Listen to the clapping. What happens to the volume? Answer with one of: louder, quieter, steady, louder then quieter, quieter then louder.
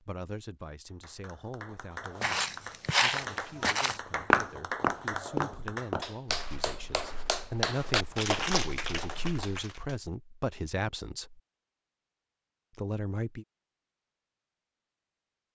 louder.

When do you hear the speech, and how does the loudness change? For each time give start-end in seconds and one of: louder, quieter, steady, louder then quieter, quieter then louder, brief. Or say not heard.
0.0-11.4 louder
12.8-13.4 brief.